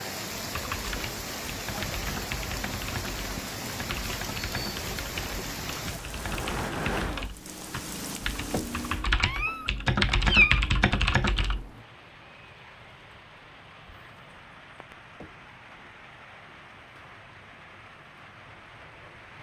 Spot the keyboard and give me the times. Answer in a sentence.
The keyboard can be heard from 0.5 to 11.7 s.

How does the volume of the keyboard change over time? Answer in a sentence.
The volume of the keyboard goes up.